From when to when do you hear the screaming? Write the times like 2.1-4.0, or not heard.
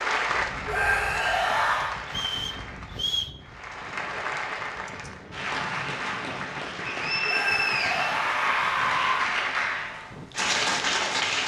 0.7-1.9, 7.2-9.2.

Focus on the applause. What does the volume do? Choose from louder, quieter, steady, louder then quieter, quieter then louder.
louder.